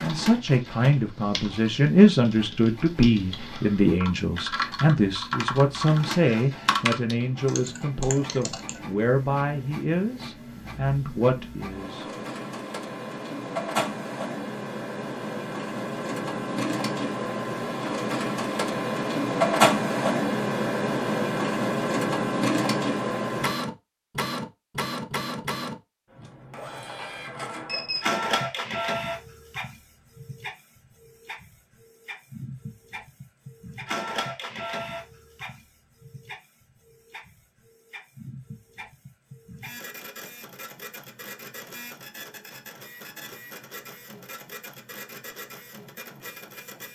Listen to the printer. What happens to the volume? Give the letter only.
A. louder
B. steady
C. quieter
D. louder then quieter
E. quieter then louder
D.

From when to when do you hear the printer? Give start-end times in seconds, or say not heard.
0.0-46.9.